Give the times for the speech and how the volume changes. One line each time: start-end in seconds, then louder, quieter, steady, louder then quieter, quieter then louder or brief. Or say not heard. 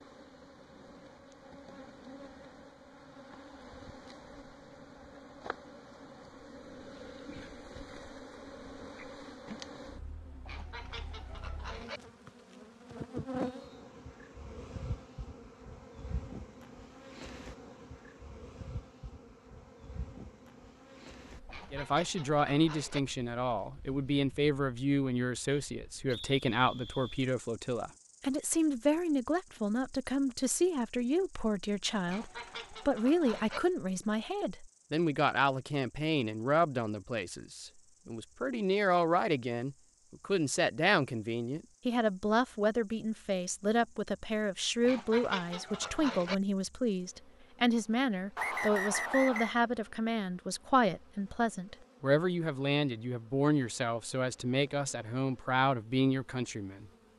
21.7-56.9 steady.